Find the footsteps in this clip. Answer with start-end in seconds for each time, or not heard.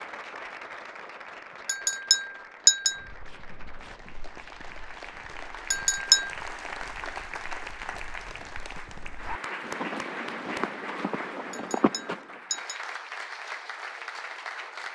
2.9-12.4.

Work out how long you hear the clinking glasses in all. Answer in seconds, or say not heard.
3 s.